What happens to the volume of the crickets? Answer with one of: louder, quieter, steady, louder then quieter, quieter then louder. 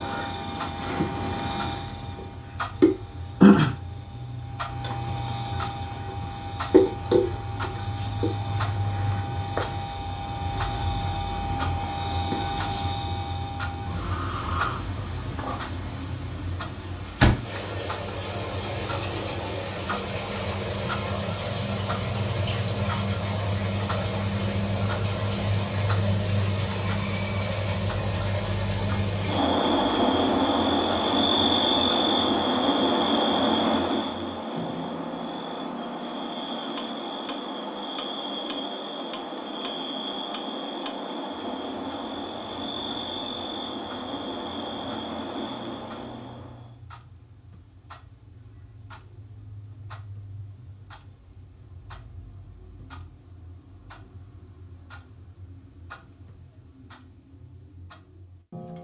quieter.